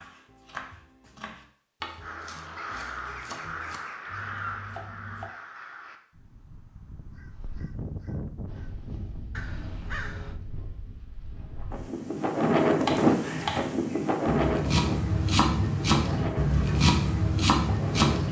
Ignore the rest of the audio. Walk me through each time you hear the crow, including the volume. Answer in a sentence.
You can hear the crow from 2.0 to 10.4 s, getting quieter then louder.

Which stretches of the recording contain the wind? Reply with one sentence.
You can hear the wind from 8.4 to 18.2 s.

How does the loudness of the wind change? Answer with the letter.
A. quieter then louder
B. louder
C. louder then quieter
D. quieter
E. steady
C.